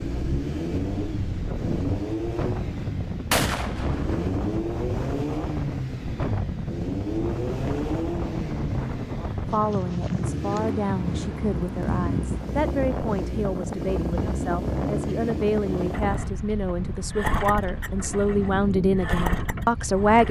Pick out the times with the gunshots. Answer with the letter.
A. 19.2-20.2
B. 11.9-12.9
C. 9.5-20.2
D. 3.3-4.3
D.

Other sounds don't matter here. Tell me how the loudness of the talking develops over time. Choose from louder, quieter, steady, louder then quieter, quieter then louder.
louder.